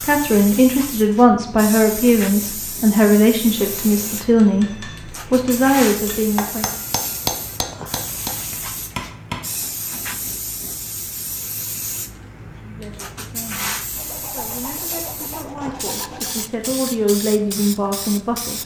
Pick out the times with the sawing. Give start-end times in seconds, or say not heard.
13.9-16.4.